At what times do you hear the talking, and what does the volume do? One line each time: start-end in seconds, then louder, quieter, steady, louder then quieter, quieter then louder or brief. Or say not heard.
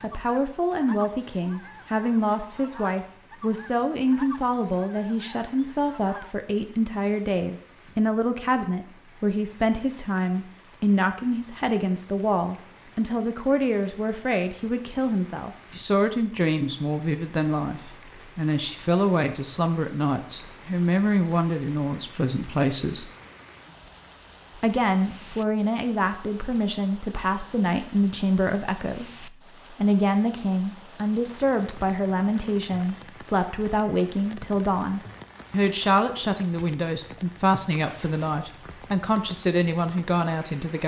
0.0-23.1 steady
24.6-40.8 steady.